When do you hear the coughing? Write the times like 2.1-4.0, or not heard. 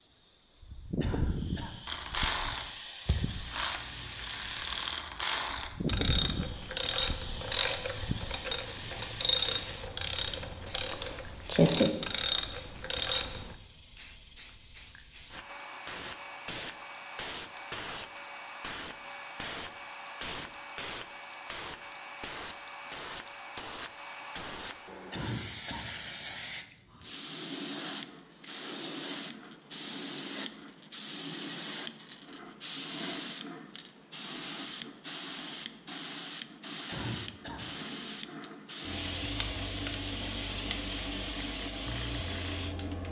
1.0-1.8, 25.1-26.4, 36.9-37.7.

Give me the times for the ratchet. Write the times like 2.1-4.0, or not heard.
1.9-13.5.